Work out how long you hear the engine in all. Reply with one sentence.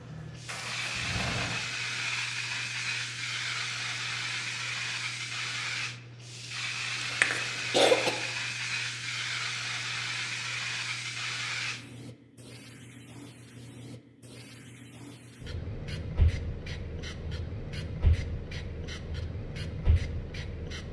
The engine can be heard for 2 seconds in total.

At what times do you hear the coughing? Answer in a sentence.
You can hear the coughing from 7.0 to 8.2 s.